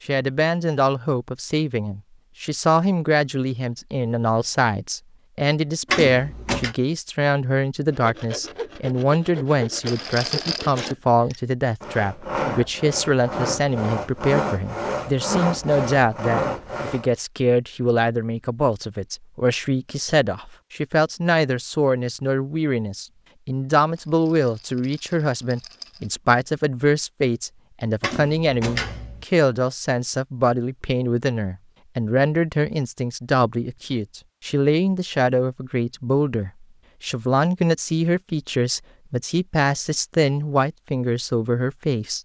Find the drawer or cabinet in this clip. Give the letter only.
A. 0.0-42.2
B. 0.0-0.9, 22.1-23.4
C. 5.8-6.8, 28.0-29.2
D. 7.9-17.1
C.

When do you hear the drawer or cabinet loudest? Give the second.
6 s.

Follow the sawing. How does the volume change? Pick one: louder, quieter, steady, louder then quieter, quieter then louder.
louder.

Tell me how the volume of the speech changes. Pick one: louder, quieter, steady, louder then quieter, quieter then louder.
steady.